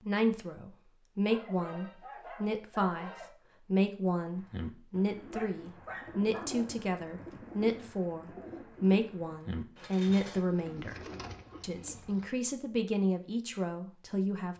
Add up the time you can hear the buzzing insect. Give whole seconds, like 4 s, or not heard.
not heard.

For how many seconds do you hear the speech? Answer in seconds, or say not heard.
14 s.